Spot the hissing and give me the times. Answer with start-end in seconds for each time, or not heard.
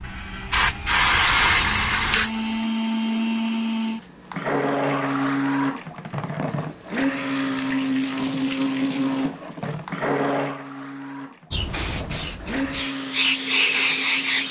0.0-2.5, 11.5-14.4.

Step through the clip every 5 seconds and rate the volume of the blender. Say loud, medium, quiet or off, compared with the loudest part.
loud, loud, medium.